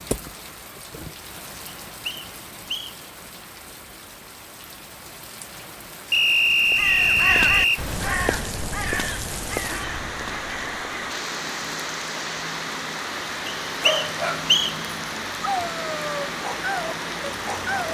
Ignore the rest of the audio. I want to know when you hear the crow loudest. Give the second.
7 s.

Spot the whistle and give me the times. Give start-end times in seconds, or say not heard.
1.6-3.0, 6.1-7.8, 13.4-14.8.